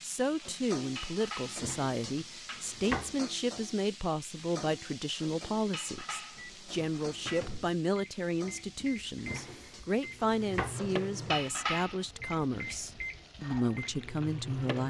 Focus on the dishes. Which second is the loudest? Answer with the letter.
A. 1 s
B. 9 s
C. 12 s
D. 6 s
C.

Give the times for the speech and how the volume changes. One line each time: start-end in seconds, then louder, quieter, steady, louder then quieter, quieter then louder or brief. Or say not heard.
0.0-14.8 steady.